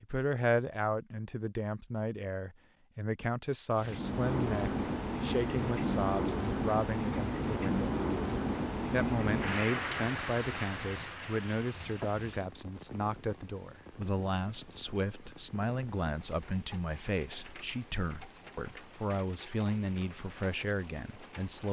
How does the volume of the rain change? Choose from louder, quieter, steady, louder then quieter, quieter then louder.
quieter.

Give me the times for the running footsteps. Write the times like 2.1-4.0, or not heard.
not heard.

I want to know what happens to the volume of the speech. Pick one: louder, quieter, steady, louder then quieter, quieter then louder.
steady.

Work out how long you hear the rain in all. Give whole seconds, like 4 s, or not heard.
18 s.